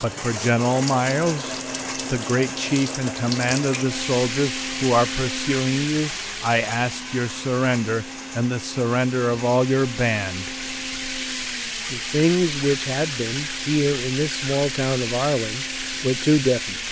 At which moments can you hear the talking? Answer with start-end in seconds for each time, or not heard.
0.0-10.5, 11.9-16.8.